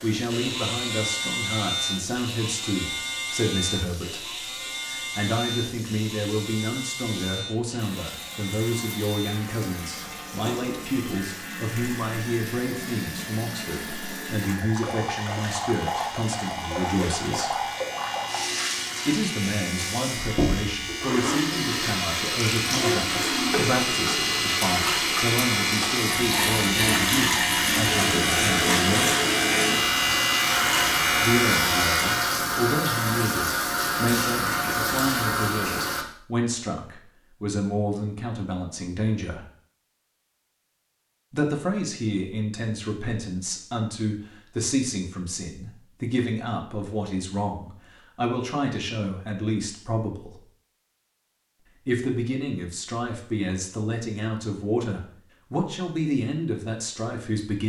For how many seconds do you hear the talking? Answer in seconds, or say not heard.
51 s.